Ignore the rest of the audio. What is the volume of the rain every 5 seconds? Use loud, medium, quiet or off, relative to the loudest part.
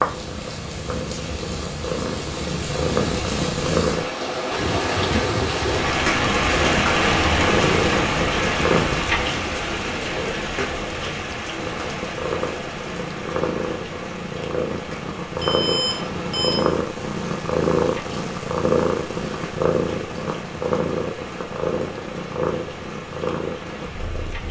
medium, loud, medium, quiet, quiet.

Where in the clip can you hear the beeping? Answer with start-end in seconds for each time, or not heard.
15.3-16.7.